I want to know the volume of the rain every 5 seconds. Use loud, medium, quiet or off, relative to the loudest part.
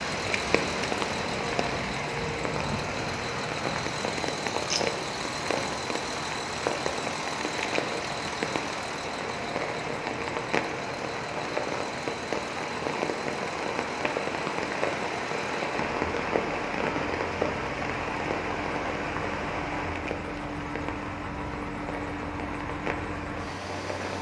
loud, loud, loud, loud, medium.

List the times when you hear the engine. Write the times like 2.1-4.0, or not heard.
0.0-24.1.